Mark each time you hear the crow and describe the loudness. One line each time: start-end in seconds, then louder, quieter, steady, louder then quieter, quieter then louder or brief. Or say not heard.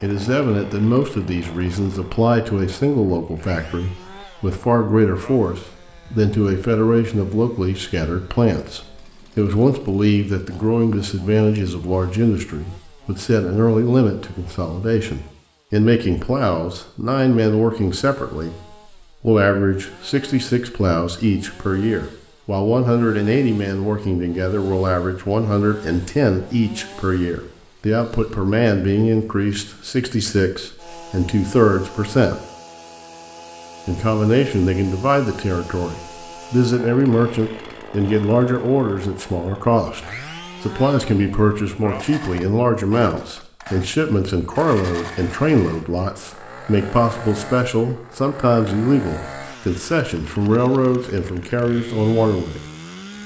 not heard.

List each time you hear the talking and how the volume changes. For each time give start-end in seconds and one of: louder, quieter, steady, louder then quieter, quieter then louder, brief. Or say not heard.
0.0-32.4 steady
33.9-52.6 steady.